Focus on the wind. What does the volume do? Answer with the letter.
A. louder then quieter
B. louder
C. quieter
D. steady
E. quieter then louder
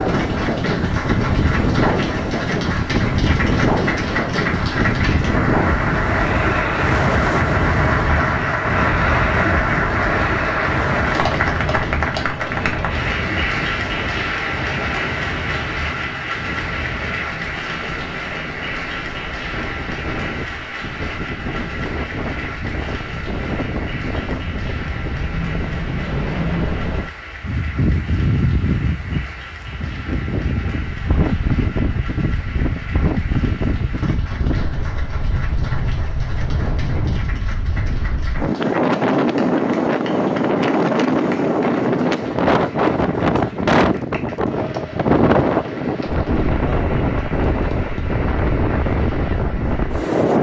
E.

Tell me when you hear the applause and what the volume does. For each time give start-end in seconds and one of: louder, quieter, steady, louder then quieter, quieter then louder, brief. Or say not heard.
0.0-50.3 quieter.